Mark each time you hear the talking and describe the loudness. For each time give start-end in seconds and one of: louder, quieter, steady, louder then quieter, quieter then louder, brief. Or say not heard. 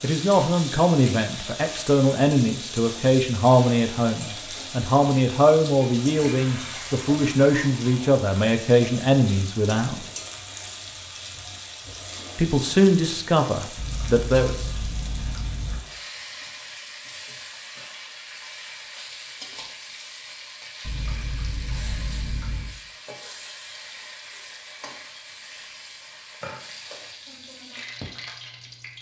0.0-10.0 steady
12.3-14.7 brief.